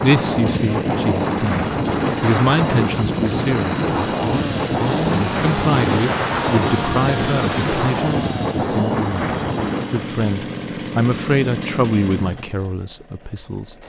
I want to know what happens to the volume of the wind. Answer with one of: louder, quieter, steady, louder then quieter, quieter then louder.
steady.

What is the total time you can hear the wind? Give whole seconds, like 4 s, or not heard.
10 s.